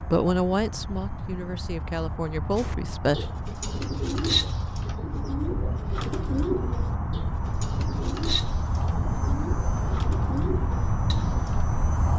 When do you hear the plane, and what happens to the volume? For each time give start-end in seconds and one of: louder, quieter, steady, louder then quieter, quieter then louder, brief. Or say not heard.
0.0-12.1 louder.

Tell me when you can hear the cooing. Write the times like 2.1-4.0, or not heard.
2.5-11.7.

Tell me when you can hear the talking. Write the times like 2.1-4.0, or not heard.
0.1-3.2.